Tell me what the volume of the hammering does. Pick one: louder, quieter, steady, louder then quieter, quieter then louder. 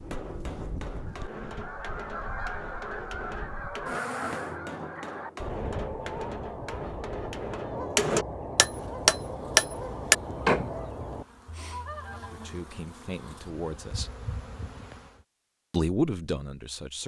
louder.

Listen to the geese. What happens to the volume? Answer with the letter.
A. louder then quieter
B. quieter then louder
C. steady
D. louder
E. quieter
C.